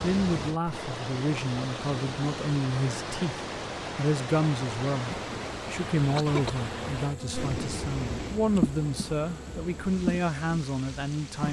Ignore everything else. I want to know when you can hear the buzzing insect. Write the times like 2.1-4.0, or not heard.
5.0-11.4.